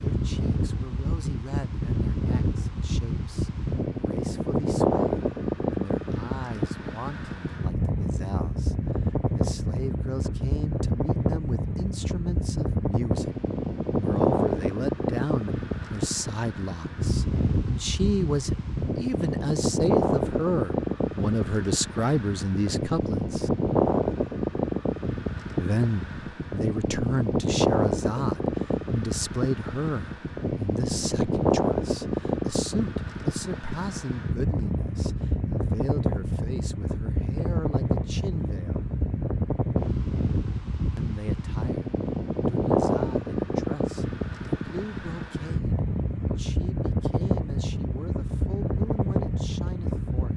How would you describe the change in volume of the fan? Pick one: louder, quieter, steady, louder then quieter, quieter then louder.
steady.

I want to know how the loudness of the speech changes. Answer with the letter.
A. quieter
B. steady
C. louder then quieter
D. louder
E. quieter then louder
C.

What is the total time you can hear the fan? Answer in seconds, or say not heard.
50 s.